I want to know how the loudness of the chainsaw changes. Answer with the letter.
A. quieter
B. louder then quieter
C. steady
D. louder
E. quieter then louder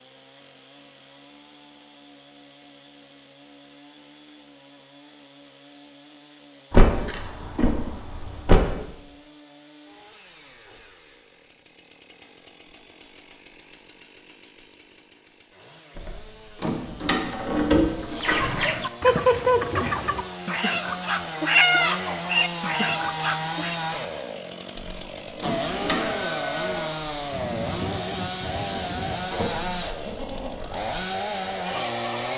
D.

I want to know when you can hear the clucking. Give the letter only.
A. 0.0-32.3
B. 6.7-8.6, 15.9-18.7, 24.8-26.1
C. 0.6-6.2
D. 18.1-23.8
D.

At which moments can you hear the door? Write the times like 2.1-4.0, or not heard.
6.7-8.6, 15.9-18.7, 24.8-26.1.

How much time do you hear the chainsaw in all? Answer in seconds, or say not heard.
32 s.